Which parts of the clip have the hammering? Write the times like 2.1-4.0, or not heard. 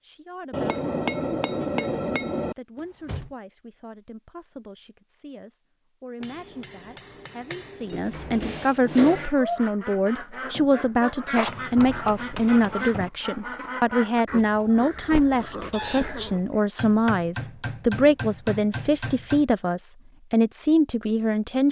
0.5-2.5, 6.2-8.0, 11.3-13.1, 16.8-19.4.